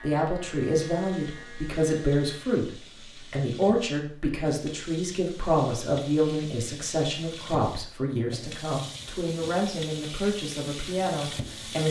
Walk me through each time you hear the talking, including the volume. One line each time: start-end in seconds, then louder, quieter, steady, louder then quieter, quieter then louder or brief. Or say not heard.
0.0-11.8 steady.